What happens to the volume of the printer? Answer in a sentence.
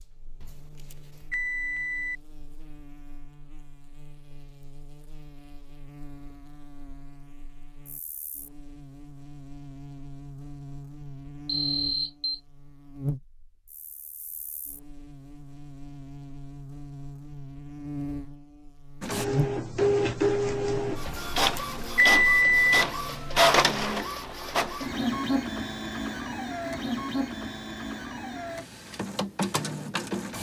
The volume of the printer goes down.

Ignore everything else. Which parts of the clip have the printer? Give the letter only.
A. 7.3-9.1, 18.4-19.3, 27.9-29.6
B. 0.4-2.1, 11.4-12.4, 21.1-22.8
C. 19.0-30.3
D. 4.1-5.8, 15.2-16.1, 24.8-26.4
C.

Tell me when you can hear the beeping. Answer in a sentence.
The beeping can be heard from 0.4 to 2.1 s, from 11.4 to 12.4 s and from 21.1 to 22.8 s.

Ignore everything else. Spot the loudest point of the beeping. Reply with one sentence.
The loudest moment of the beeping is at 22 seconds.